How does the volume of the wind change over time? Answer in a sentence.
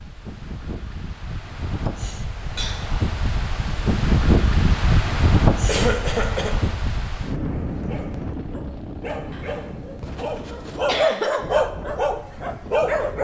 The loudness of the wind goes up, then down.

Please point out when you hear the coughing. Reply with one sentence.
You can hear the coughing from 1.9 to 2.8 s, from 5.7 to 6.5 s and from 9.3 to 11.4 s.